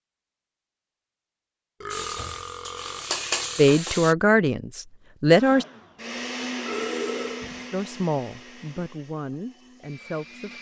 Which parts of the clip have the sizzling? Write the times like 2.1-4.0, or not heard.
1.9-4.2.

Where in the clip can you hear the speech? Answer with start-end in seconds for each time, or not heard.
3.5-5.7, 7.7-10.5.